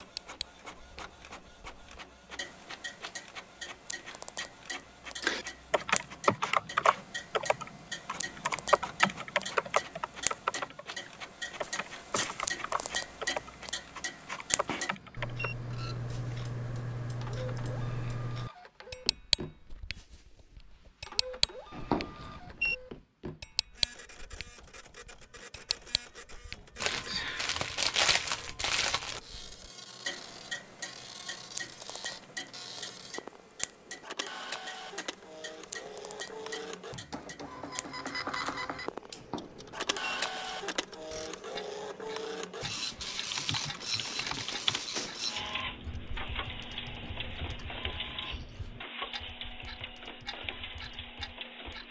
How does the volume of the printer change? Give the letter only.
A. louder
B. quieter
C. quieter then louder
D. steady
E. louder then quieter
A.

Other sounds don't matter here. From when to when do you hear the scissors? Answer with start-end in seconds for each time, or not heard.
not heard.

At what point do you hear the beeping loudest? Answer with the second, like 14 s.
22 s.